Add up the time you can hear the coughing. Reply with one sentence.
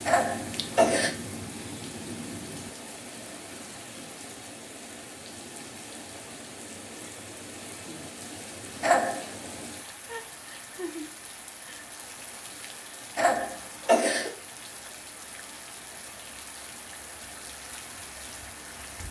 You can hear the coughing for 3 seconds altogether.